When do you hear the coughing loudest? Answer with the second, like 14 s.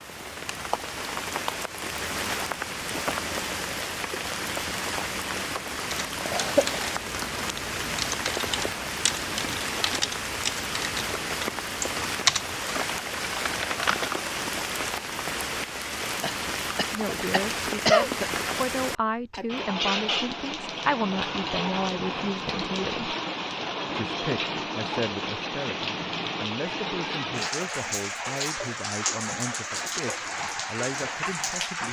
18 s.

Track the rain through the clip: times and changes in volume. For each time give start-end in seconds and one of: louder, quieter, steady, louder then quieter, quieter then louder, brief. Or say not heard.
0.0-31.8 steady.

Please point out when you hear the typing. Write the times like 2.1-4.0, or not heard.
5.9-14.3.